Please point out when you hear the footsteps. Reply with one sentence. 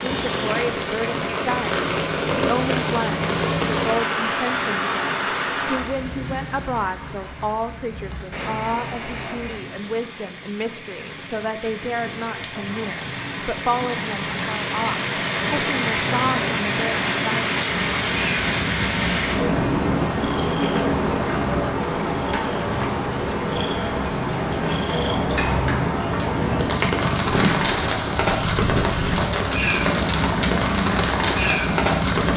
You can't hear the footsteps here.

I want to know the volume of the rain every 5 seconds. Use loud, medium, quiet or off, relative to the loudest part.
loud, medium, medium, loud, loud, loud, loud.